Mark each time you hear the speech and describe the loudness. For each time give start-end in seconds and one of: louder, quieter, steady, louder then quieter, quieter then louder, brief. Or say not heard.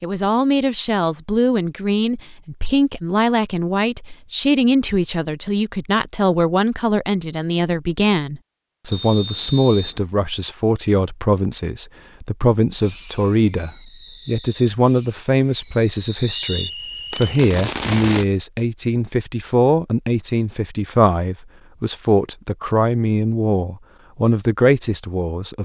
0.0-25.6 steady.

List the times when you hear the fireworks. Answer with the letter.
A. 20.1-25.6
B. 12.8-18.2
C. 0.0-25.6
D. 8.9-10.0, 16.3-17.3
B.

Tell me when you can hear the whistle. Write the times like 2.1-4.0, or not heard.
8.9-10.0, 16.3-17.3.